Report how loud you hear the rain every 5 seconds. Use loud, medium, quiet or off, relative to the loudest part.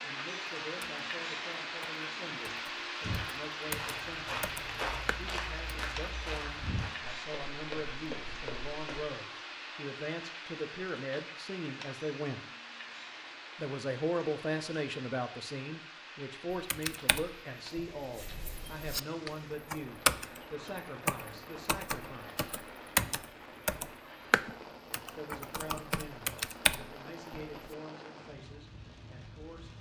loud, loud, medium, medium, medium, medium.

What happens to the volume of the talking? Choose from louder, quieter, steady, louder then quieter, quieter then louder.
louder then quieter.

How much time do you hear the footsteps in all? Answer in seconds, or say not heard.
6 s.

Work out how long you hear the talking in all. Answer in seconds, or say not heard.
26 s.